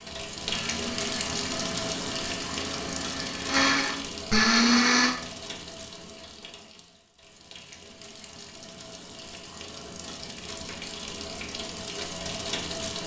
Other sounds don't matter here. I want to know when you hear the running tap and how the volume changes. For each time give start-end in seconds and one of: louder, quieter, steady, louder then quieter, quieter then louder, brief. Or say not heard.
0.0-13.0 quieter then louder.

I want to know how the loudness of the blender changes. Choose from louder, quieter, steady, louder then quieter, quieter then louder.
louder.